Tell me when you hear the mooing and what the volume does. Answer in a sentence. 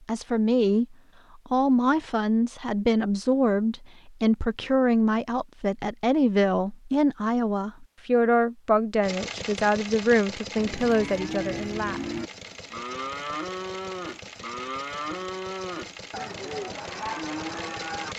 The mooing can be heard from 10.6 to 18.1 s, at a steady volume.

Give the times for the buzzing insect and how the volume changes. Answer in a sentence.
The buzzing insect can't be heard in this clip.